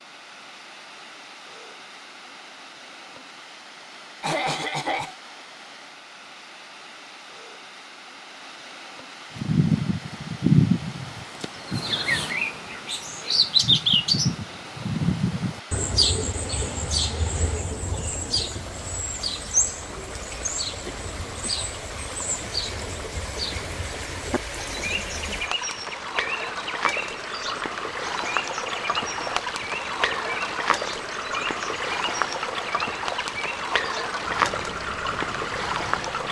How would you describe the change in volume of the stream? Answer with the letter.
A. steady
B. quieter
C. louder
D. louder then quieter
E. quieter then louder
C.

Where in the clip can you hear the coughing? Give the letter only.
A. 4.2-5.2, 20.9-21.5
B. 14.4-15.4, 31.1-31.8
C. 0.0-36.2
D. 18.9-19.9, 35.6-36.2
A.